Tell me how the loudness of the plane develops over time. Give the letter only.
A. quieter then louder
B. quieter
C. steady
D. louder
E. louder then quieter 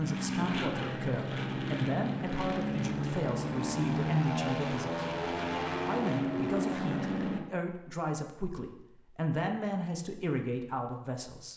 C.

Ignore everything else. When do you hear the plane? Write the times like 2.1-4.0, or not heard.
0.0-7.4.